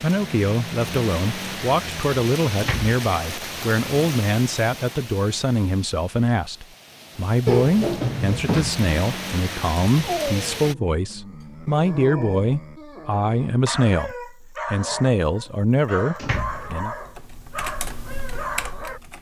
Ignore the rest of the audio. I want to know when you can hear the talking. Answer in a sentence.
The talking can be heard from 0.0 to 16.9 s.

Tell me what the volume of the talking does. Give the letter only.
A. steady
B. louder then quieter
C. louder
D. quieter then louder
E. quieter
A.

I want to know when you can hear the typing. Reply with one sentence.
You can hear the typing from 16.5 to 19.1 s.